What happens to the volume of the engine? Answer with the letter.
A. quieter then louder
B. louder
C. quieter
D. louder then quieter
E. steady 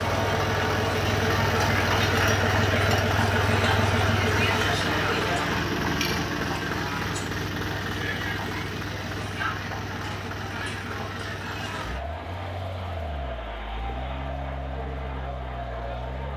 C.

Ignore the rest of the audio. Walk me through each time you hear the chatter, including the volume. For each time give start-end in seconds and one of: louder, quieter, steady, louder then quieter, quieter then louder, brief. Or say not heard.
0.0-16.3 quieter.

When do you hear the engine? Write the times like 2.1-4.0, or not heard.
0.0-16.3.